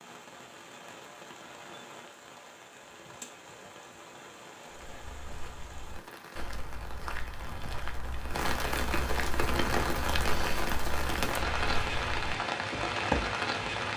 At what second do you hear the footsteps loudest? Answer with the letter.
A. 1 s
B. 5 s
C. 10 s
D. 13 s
D.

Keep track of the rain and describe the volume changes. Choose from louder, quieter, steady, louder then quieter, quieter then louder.
louder.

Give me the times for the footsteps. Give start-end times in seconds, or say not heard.
4.7-13.9.